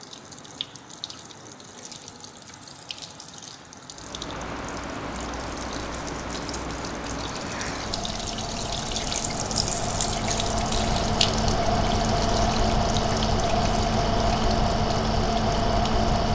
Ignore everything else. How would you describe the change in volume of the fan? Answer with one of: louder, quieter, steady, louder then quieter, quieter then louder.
louder.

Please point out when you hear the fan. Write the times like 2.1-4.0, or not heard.
3.9-16.3.